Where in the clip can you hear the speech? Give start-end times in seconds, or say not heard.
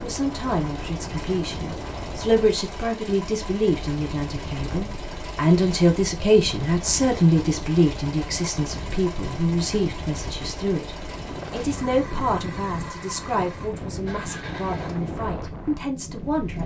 0.0-16.6.